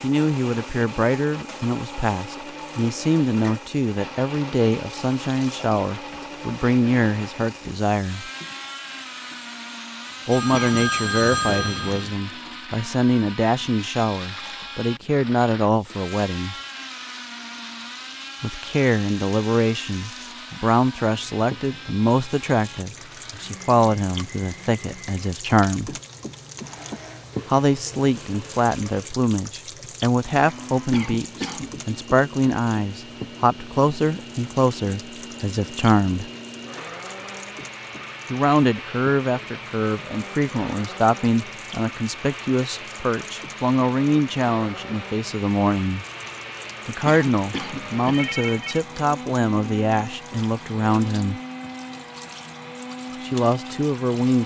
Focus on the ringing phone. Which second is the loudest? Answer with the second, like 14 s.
11 s.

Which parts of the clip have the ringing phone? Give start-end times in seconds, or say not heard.
10.3-12.2, 48.1-48.9.